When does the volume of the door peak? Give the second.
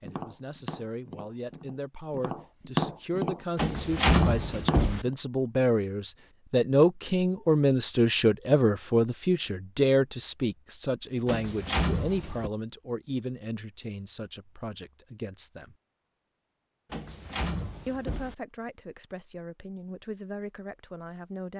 4 s.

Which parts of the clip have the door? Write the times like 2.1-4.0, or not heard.
3.5-5.0, 11.2-12.5, 16.9-18.4.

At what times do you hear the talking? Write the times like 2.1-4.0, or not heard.
0.0-15.8, 17.9-21.5.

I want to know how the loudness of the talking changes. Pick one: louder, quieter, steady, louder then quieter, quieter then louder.
louder then quieter.